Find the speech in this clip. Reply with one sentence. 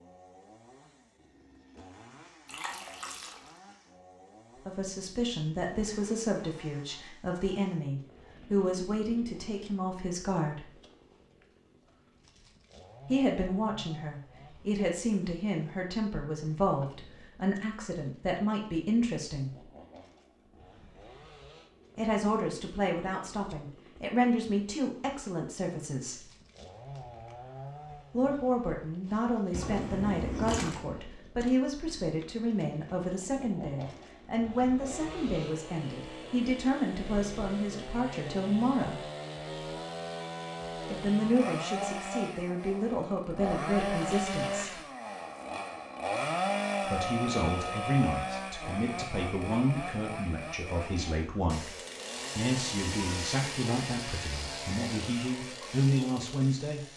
The speech can be heard from 4.7 to 10.8 s, from 13.1 to 19.6 s, from 21.9 to 26.2 s, from 28.1 to 39.0 s, from 40.9 to 44.8 s and from 46.9 to 56.9 s.